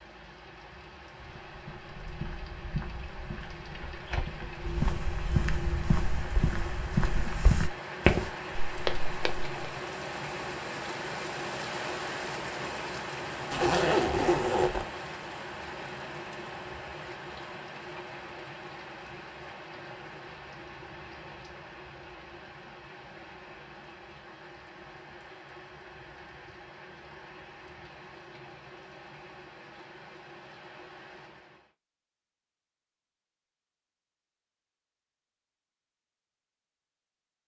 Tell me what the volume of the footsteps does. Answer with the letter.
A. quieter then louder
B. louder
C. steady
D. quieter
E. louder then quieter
B.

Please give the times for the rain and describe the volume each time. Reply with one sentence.
The rain can be heard from 0.0 to 31.8 s, getting louder then quieter.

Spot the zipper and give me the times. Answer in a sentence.
You can hear the zipper from 13.5 to 14.8 s.